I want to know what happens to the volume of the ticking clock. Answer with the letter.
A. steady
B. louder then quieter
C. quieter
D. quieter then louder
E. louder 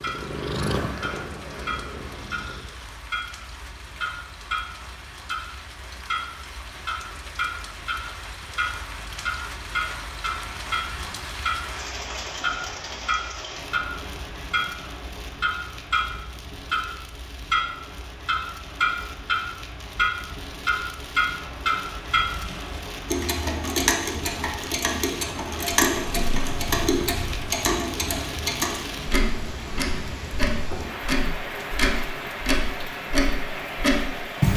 E.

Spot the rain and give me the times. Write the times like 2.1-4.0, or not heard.
0.0-34.5.